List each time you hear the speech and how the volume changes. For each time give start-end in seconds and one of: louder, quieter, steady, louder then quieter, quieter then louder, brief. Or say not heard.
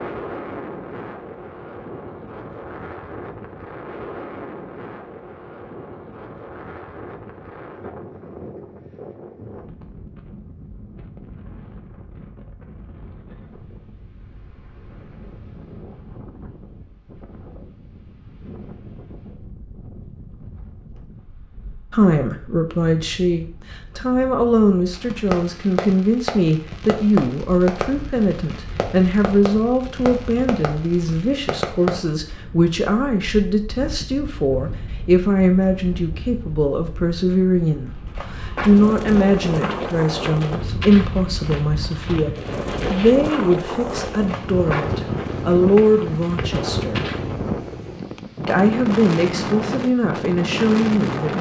21.9-47.0 steady
48.5-51.3 brief.